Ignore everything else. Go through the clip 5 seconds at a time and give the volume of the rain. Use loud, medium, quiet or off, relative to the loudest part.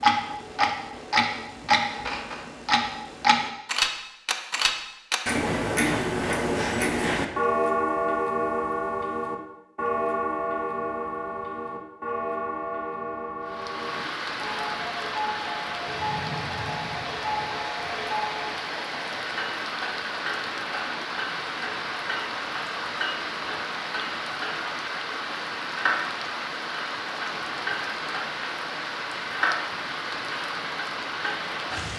off, off, loud, loud, loud, loud, loud.